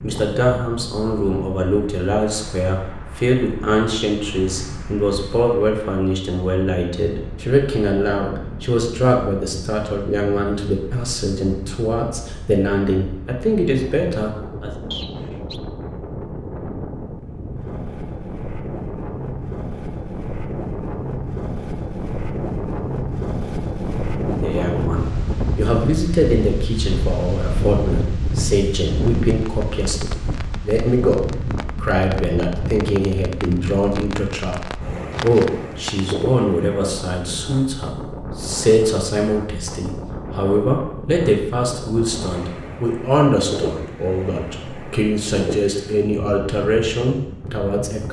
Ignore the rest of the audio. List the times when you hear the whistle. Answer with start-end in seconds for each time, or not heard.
14.9-15.6.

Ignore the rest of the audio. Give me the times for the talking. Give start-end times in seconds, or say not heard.
0.0-14.7, 24.2-48.0.